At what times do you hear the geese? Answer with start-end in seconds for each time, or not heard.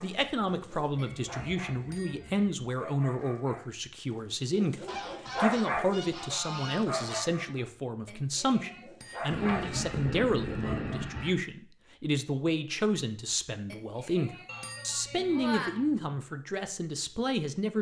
0.2-2.5, 4.8-7.2, 9.3-11.3, 14.4-16.1.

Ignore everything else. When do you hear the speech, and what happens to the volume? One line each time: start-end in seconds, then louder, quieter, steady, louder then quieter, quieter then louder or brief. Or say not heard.
0.0-17.7 steady.